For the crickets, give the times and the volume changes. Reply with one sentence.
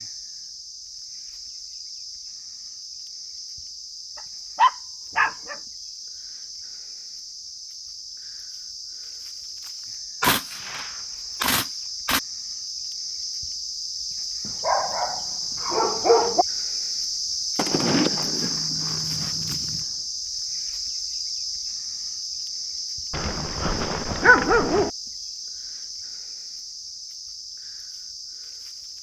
You can hear the crickets from 0.0 to 28.9 s, getting louder then quieter.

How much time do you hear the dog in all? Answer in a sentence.
You can hear the dog for 5 seconds altogether.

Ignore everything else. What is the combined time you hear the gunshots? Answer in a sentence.
The gunshots can be heard for 4 seconds in total.